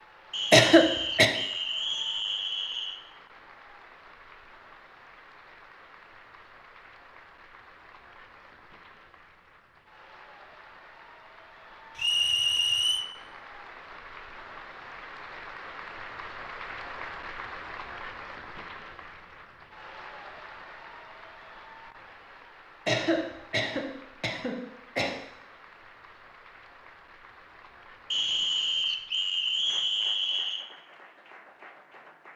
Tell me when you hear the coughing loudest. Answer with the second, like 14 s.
1 s.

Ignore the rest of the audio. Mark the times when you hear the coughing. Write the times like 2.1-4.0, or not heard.
0.5-1.4, 22.9-25.1.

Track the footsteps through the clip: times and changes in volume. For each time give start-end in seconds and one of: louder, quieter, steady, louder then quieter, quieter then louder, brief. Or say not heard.
not heard.